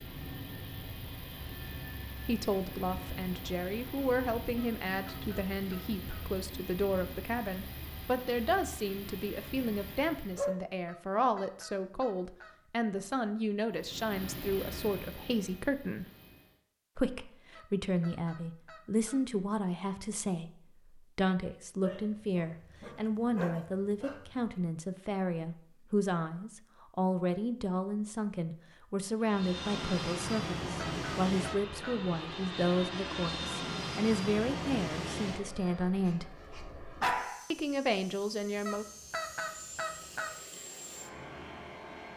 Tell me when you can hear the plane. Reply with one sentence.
The plane can be heard from 0.0 to 10.6 s, from 13.7 to 16.6 s and from 29.2 to 42.1 s.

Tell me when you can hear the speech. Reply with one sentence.
The speech can be heard from 2.2 to 16.1 s, from 16.9 to 36.2 s and from 37.5 to 38.9 s.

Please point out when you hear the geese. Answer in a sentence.
You can hear the geese from 4.5 to 6.2 s, from 10.8 to 12.6 s, from 17.6 to 19.2 s, from 30.3 to 31.9 s and from 38.6 to 40.3 s.